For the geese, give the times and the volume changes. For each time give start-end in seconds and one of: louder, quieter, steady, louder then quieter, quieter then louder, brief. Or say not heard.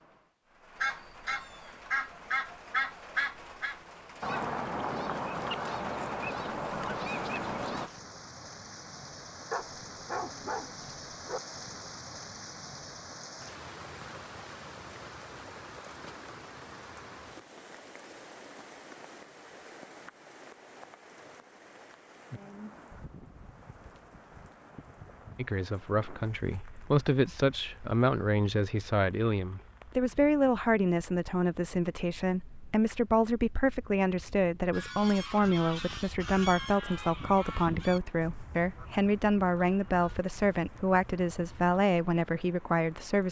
0.8-7.9 steady
34.7-41.9 quieter.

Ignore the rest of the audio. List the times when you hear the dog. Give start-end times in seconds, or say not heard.
9.5-11.4.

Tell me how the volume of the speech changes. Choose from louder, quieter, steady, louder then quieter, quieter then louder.
steady.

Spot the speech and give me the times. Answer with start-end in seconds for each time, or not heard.
25.4-43.2.